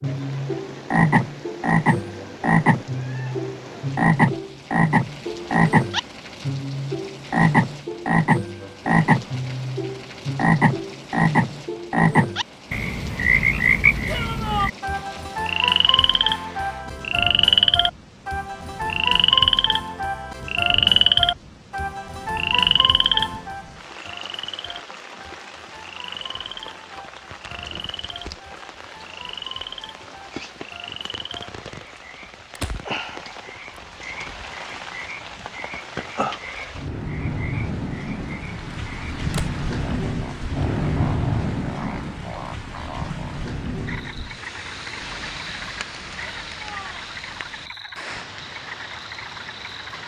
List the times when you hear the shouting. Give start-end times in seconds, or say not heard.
14.1-14.7, 46.2-47.1.